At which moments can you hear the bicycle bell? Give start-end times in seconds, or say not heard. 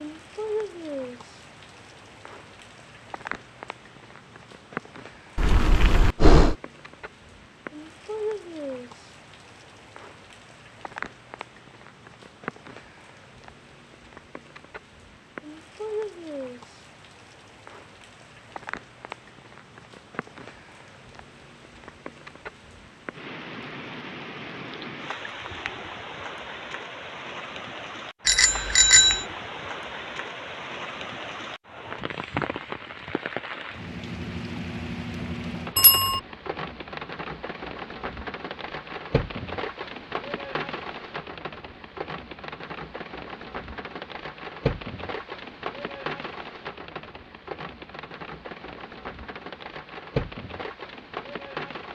5.3-6.5, 28.2-29.2, 35.8-36.2.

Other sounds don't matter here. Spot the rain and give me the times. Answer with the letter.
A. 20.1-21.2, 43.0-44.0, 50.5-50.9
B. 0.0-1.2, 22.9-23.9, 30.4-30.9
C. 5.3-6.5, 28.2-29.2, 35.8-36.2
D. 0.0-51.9
D.